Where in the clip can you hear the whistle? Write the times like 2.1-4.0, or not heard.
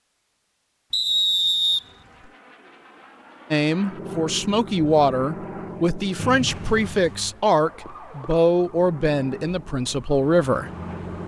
0.9-1.9, 6.2-7.2.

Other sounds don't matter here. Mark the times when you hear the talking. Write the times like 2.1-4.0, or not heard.
3.5-10.7.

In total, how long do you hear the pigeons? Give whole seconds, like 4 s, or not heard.
not heard.